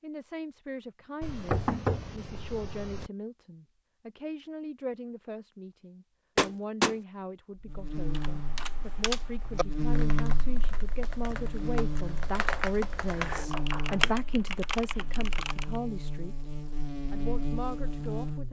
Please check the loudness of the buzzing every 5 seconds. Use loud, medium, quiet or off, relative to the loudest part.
off, loud, loud, loud.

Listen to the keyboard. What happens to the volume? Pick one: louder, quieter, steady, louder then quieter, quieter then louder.
quieter then louder.